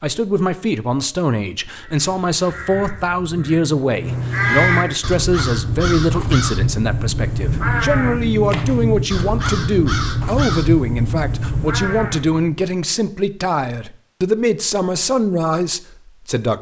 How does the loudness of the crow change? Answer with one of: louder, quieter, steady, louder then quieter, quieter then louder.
louder.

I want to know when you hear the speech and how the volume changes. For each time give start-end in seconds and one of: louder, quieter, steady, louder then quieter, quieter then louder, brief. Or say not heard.
0.0-16.5 steady.